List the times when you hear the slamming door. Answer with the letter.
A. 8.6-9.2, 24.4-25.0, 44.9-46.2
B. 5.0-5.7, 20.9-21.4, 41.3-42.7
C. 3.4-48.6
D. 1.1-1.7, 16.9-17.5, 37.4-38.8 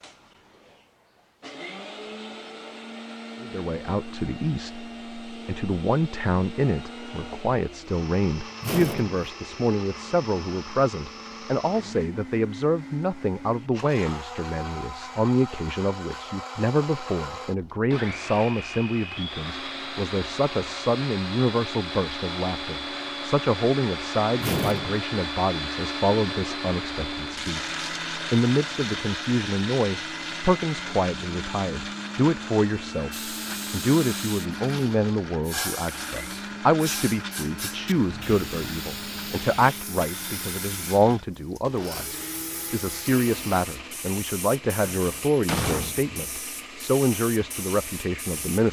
A.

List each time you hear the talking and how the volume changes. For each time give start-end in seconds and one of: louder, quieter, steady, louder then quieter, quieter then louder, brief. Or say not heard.
3.4-48.6 steady.